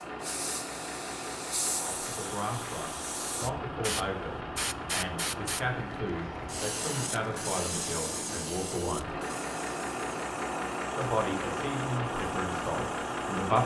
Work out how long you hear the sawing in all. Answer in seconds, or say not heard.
not heard.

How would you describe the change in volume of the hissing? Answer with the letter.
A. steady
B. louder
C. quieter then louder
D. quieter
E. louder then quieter
D.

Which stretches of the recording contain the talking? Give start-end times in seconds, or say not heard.
1.8-9.2, 10.9-13.6.